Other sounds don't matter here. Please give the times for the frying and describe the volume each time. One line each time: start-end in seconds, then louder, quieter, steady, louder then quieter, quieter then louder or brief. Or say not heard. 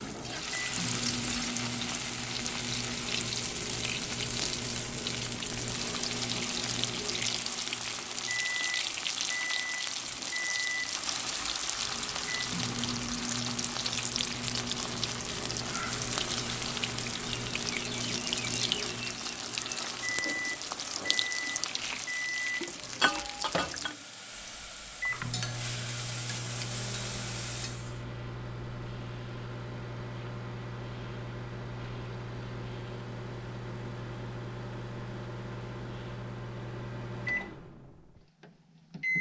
0.0-28.1 steady.